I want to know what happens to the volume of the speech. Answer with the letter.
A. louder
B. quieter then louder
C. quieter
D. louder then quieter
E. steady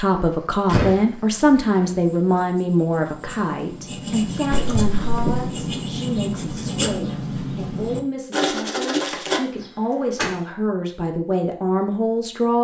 B.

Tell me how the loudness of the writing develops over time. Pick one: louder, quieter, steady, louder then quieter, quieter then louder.
louder.